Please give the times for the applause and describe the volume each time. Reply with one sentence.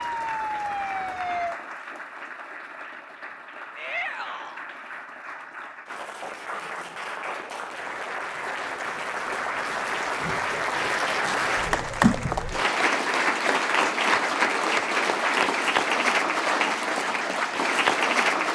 The applause can be heard from 0.0 to 18.5 s, getting louder.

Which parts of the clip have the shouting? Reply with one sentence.
You can hear the shouting from 3.8 to 4.6 s.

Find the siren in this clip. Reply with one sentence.
You can hear the siren from 0.0 to 1.6 s.